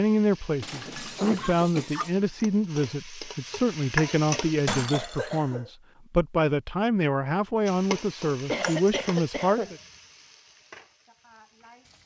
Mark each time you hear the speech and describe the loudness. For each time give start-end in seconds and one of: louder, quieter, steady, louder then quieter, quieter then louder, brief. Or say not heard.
0.0-9.8 steady.